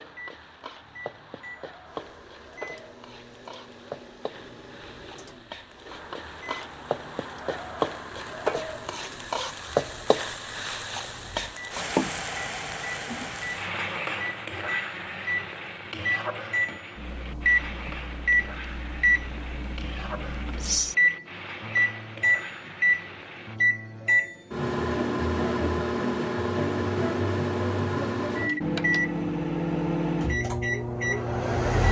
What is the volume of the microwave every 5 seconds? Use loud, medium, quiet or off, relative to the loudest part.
quiet, quiet, quiet, loud, loud, loud, loud.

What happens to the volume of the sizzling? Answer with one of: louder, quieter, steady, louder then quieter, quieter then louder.
louder then quieter.